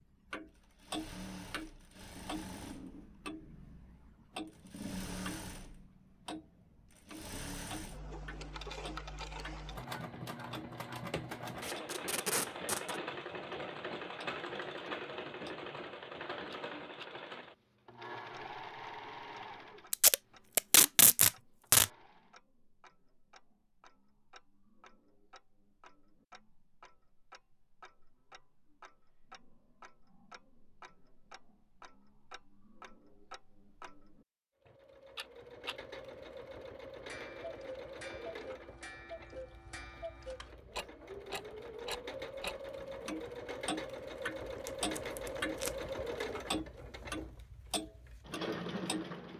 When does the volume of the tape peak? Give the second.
21 s.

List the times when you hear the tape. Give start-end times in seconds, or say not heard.
11.6-13.0, 19.9-21.9, 44.5-45.9.